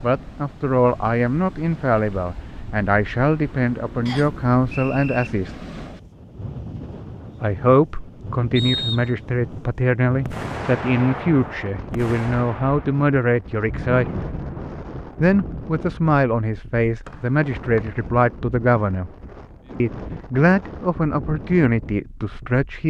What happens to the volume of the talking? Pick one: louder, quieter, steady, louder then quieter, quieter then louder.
steady.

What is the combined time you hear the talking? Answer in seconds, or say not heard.
19 s.